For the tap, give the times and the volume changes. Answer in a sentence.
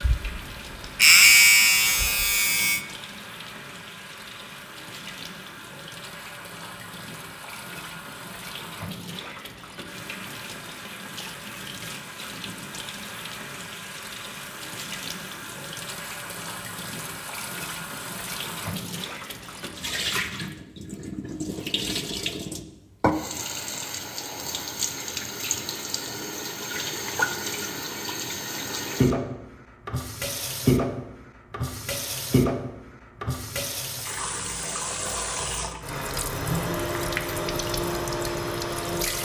You can hear the tap from 0.0 to 39.1 s, getting louder.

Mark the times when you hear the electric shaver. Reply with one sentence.
You can hear the electric shaver from 0.0 to 2.9 s.